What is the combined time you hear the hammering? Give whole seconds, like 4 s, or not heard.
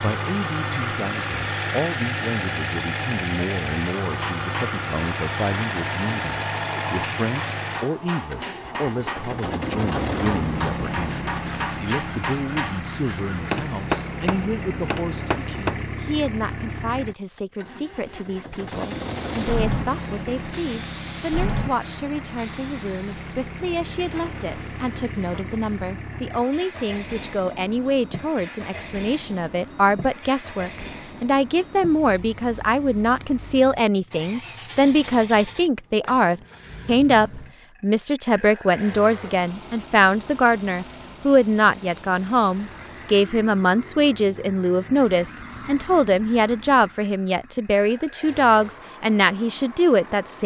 12 s.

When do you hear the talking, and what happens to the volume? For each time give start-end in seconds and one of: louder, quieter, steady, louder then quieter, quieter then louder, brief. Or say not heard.
0.0-50.4 louder.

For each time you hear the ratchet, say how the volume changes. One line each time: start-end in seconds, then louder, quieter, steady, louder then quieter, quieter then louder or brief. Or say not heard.
not heard.